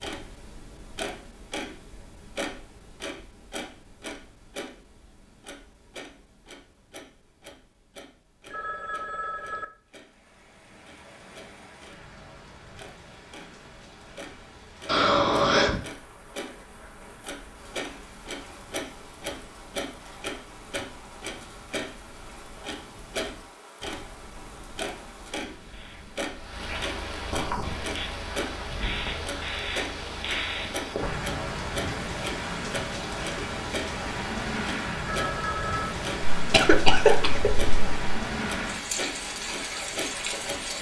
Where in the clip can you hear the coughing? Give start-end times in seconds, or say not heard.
14.8-15.8, 36.4-38.0.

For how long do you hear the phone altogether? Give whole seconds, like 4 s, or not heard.
2 s.